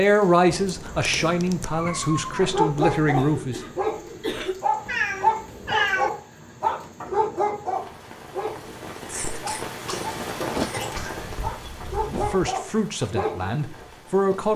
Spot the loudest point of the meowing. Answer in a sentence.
The loudest moment of the meowing is at 6 seconds.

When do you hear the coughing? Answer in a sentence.
You can hear the coughing from 3.0 to 4.5 s and from 9.1 to 11.1 s.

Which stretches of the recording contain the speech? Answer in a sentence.
You can hear the speech from 0.0 to 3.6 s and from 12.1 to 14.5 s.